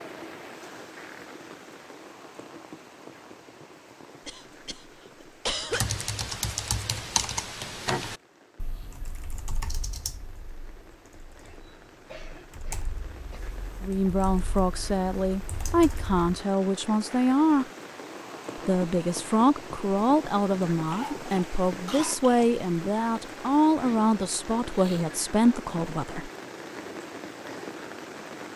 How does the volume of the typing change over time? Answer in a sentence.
The volume of the typing goes down.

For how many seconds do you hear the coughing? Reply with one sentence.
The coughing can be heard for 5 seconds in total.